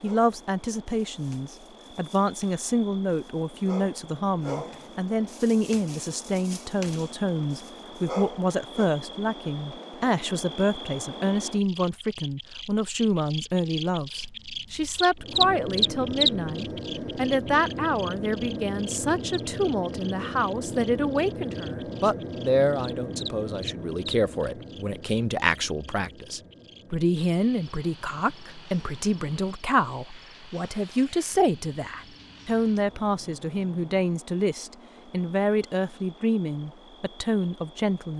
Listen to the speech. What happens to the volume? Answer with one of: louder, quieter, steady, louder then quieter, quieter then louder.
steady.